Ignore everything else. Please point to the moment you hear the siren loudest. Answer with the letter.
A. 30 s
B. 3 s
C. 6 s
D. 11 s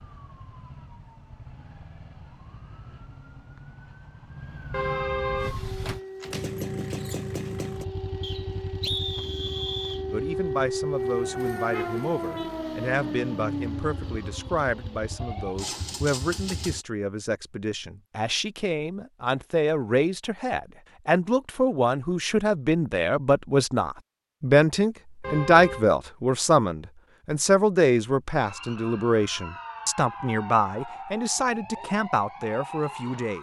D.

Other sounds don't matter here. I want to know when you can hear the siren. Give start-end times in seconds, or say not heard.
0.0-15.6, 28.4-33.3.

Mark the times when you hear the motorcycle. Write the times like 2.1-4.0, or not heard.
5.3-16.9.